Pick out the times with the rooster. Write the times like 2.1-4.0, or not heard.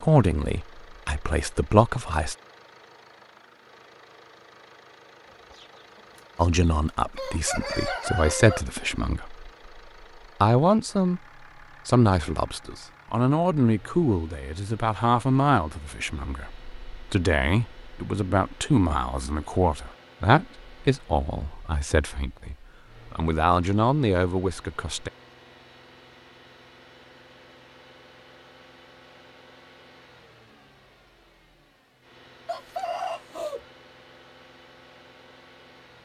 5.2-8.7, 32.5-33.6.